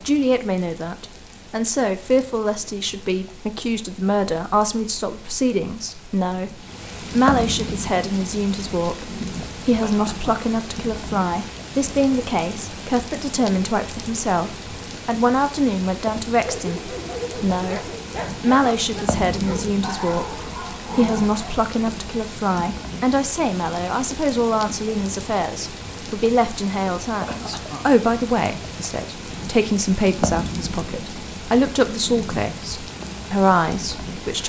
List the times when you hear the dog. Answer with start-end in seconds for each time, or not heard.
16.4-21.6.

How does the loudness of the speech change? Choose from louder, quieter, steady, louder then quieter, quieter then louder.
steady.